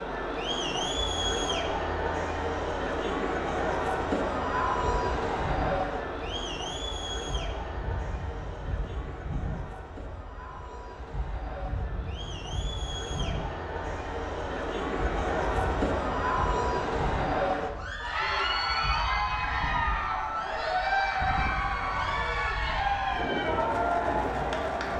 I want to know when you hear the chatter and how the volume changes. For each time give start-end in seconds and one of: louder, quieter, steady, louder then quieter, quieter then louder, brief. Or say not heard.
0.0-24.9 quieter then louder.